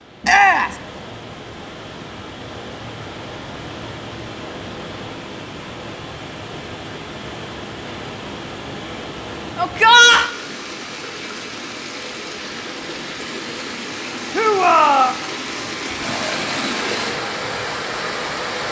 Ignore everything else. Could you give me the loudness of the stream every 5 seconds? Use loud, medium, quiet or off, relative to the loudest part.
medium, medium, medium, loud.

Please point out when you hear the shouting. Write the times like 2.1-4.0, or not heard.
0.2-0.8, 9.6-10.3, 14.3-15.2.